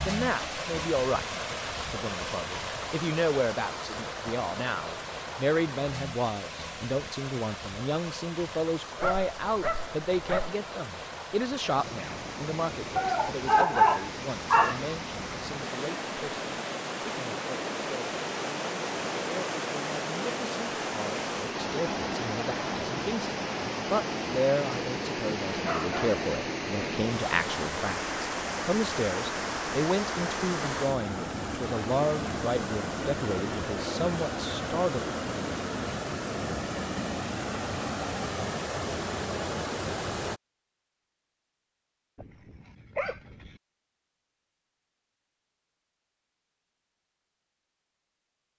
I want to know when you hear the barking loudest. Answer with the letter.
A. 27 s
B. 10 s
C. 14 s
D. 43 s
C.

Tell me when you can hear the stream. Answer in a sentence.
The stream can be heard from 0.0 to 40.4 s.